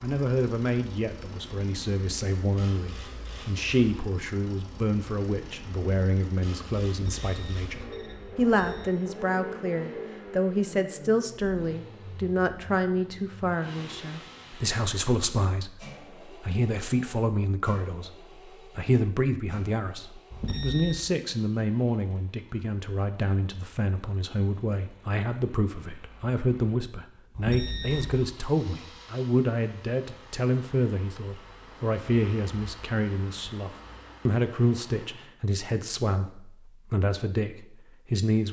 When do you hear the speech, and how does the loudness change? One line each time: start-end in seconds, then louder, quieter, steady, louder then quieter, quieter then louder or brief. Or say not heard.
0.0-38.4 steady.